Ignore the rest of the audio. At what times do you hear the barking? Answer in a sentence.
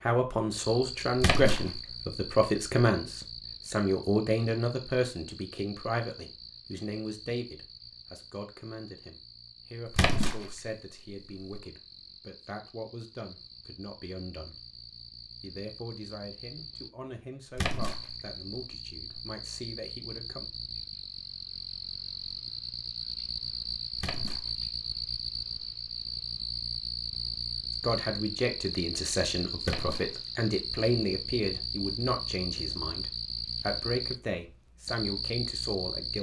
The barking can't be heard in this clip.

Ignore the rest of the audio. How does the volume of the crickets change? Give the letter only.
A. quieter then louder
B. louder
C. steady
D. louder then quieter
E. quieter
A.